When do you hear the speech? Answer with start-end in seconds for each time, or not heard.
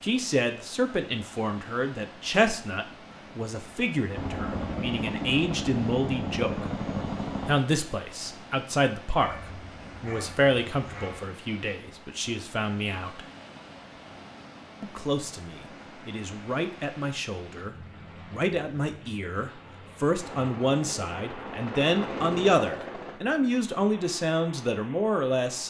0.0-6.7, 7.5-13.2, 14.8-25.6.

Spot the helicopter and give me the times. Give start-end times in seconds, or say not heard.
4.1-7.5, 20.1-23.2.